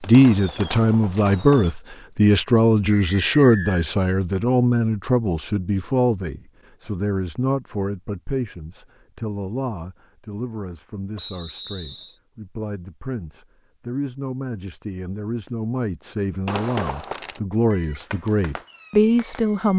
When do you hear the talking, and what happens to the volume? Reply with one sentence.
The talking can be heard from 0.0 to 19.7 s, getting quieter then louder.